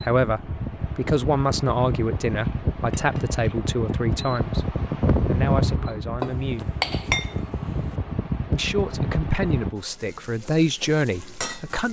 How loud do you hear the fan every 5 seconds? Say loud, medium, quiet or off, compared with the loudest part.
loud, loud, off.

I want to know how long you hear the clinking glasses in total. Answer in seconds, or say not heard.
3 s.